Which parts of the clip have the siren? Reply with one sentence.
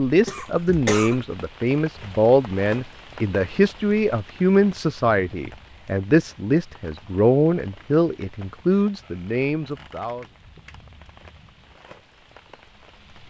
The siren can't be heard in this clip.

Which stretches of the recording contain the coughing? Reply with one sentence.
You can hear the coughing from 0.2 to 1.2 s.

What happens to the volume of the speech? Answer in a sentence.
The loudness of the speech stays about the same.